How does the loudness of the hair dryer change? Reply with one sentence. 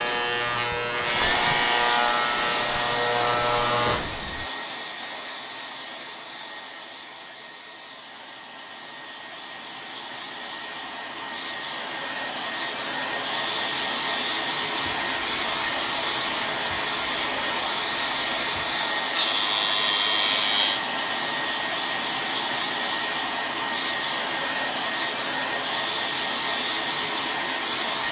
The volume of the hair dryer goes down, then up.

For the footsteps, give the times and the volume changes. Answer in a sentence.
You can't hear the footsteps here.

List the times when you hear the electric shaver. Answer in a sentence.
You can hear the electric shaver from 0.0 to 4.5 s and from 14.7 to 20.8 s.